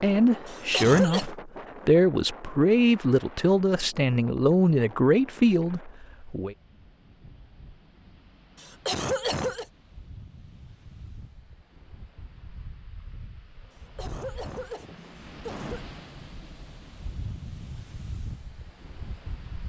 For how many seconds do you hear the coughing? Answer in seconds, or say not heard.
4 s.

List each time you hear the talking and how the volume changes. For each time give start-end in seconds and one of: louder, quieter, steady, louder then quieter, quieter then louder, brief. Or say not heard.
0.0-6.5 steady.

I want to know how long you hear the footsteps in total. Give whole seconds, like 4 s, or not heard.
not heard.